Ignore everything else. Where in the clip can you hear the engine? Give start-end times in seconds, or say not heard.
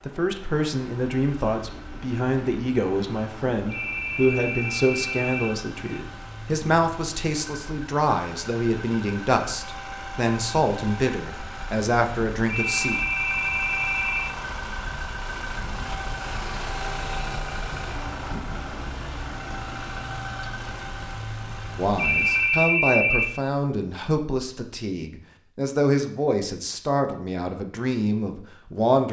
0.0-22.6.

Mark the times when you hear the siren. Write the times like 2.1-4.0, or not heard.
not heard.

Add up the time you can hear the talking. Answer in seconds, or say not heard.
20 s.